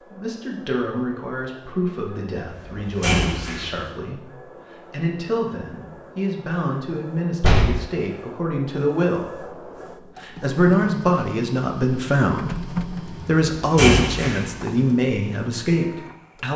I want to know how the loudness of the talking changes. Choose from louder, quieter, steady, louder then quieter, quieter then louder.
louder.